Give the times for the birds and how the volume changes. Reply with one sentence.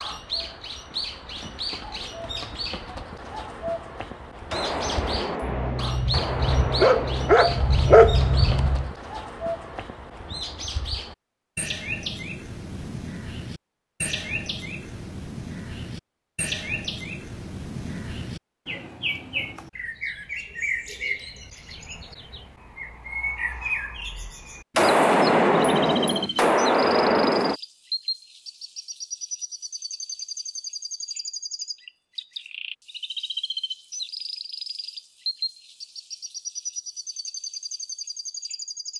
You can hear the birds from 0.0 to 38.9 s, at a steady volume.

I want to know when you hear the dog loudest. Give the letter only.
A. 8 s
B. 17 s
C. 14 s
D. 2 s
A.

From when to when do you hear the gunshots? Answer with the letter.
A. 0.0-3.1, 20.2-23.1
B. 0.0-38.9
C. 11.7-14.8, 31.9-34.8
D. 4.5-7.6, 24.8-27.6
D.